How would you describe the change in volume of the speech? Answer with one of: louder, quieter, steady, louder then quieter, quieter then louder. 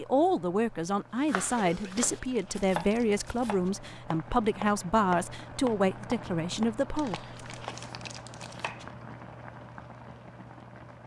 steady.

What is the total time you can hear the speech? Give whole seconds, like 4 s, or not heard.
7 s.